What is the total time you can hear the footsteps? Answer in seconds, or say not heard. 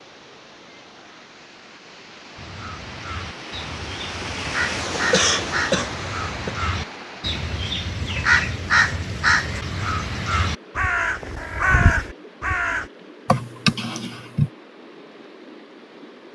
not heard.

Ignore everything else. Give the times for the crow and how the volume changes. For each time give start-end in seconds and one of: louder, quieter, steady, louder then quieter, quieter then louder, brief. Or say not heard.
2.4-12.8 louder.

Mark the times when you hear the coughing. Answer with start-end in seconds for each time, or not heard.
5.0-6.5, 13.2-14.5.